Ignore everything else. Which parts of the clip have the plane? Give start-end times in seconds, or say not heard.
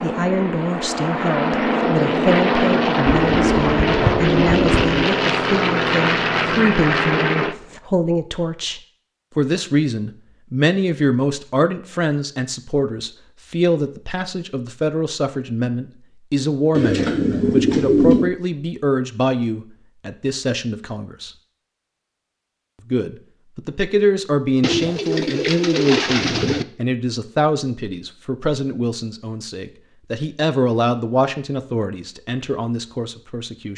0.0-7.5.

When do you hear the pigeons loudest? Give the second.
18 s.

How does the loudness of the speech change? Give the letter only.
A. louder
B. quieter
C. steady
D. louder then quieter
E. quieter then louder
C.